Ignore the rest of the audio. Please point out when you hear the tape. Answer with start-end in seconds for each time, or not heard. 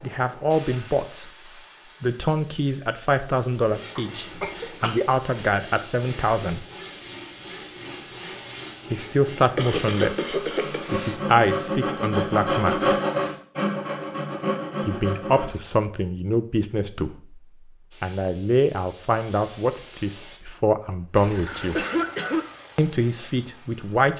not heard.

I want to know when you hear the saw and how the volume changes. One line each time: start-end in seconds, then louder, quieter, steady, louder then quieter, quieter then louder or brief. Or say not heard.
3.6-15.5 louder.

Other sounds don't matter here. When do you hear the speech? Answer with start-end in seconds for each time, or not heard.
0.0-1.3, 2.0-6.7, 8.9-12.8, 14.8-17.4, 18.0-21.9, 22.8-24.1.